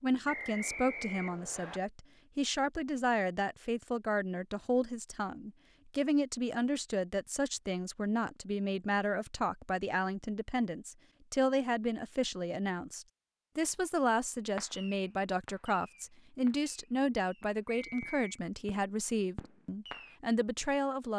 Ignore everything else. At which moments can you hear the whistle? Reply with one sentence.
The whistle can be heard from 0.2 to 1.8 s and from 17.6 to 18.4 s.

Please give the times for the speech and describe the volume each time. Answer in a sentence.
You can hear the speech from 0.0 to 21.1 s, at a steady volume.